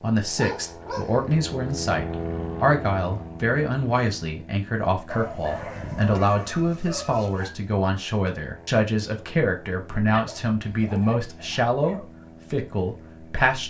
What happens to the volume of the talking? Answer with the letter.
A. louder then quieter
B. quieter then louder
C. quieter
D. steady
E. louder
D.